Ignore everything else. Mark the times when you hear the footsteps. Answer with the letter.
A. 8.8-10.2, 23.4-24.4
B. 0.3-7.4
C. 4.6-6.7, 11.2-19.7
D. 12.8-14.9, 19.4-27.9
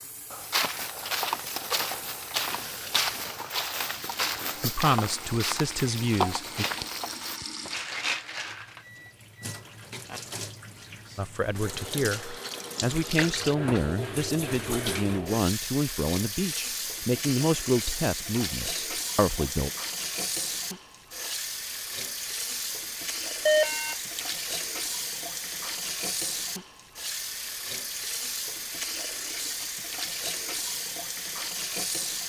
B.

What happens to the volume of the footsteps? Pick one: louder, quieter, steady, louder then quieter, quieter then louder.
steady.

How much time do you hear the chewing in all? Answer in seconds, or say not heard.
not heard.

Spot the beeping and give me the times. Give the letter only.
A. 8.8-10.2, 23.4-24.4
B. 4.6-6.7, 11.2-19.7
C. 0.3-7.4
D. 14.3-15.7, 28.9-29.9
A.